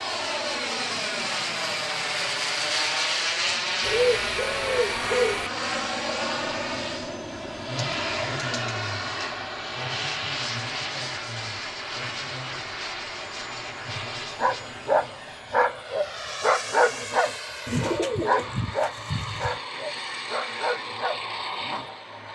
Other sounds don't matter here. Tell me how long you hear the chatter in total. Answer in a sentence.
You can't hear the chatter here.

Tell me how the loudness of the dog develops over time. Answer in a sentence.
The volume of the dog goes down.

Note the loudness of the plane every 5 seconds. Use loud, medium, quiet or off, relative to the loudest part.
loud, loud, medium, medium, medium.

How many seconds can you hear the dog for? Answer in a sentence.
You can hear the dog for 8 seconds altogether.